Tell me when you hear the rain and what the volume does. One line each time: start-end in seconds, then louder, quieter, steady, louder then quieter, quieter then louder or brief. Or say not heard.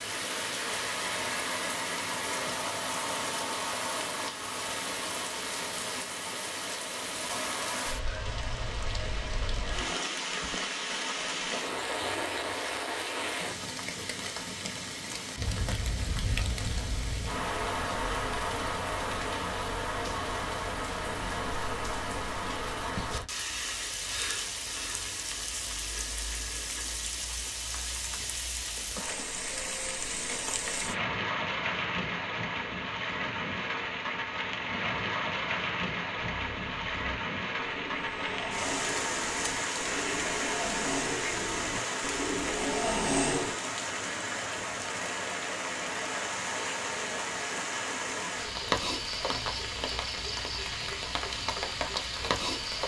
0.0-52.8 steady.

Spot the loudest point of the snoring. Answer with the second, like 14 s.
43 s.